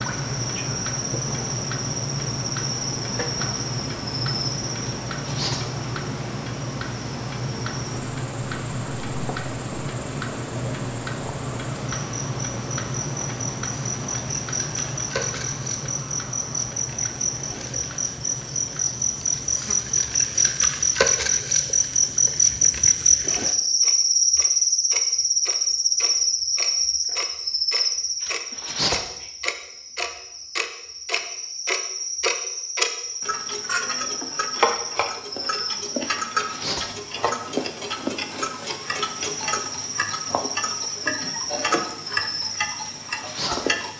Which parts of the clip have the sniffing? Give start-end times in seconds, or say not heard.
not heard.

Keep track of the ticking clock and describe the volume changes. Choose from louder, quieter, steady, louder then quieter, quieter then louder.
quieter then louder.